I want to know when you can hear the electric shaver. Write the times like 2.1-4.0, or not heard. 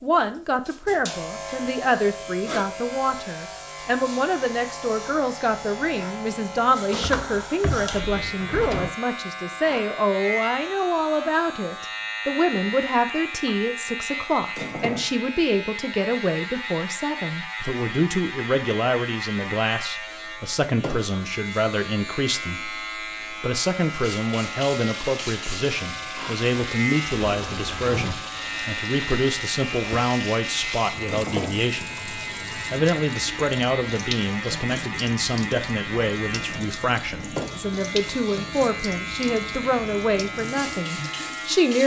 0.0-41.8.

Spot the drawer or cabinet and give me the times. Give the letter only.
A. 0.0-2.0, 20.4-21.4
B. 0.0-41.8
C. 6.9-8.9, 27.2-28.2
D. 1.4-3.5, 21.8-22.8
C.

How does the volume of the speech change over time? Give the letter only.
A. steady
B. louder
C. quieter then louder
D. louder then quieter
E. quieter
A.